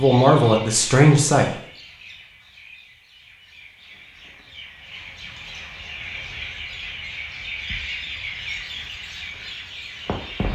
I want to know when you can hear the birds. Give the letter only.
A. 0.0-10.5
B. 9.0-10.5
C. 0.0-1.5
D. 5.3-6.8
A.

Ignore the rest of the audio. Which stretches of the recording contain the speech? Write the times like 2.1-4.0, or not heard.
0.0-1.5.